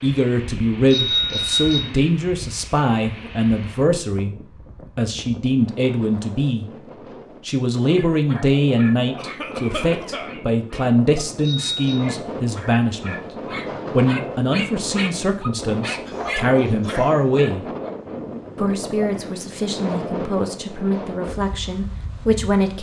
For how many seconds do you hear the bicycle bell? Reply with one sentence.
The bicycle bell can be heard for 2 seconds in total.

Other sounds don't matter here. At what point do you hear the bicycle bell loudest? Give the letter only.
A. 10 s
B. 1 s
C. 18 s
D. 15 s
B.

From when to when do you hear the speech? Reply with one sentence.
The speech can be heard from 0.0 to 6.7 s, from 7.4 to 13.2 s, from 13.9 to 17.7 s and from 18.6 to 22.7 s.